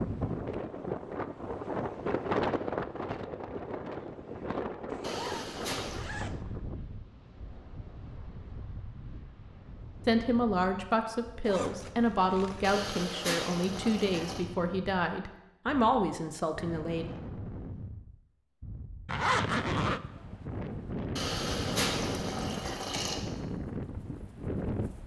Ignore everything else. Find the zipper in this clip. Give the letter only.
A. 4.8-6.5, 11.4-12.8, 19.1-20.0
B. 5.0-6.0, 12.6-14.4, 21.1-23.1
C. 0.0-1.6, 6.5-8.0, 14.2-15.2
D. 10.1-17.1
A.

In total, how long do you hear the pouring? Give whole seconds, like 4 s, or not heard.
5 s.